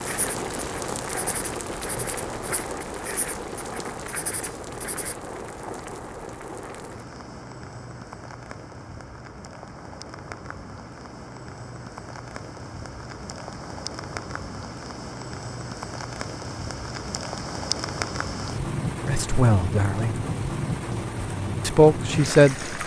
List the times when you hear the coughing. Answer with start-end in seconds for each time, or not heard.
not heard.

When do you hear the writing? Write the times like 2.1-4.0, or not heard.
0.0-5.2.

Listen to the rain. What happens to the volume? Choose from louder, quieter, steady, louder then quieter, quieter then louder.
quieter then louder.